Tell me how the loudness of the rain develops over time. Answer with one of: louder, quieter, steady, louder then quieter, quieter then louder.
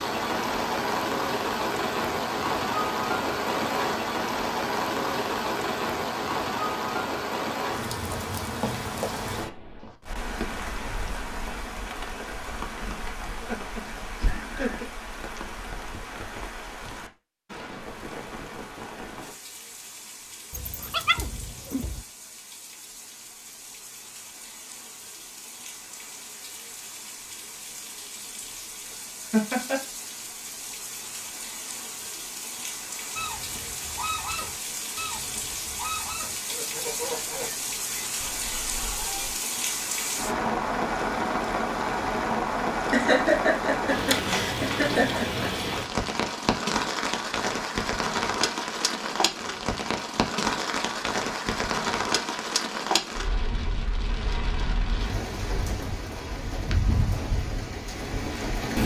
quieter then louder.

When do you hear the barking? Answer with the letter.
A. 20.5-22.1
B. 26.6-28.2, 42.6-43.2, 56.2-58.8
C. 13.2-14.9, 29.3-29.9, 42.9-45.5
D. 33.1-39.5
A.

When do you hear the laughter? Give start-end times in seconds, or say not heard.
13.2-14.9, 29.3-29.9, 42.9-45.5.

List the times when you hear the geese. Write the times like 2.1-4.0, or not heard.
33.1-39.5.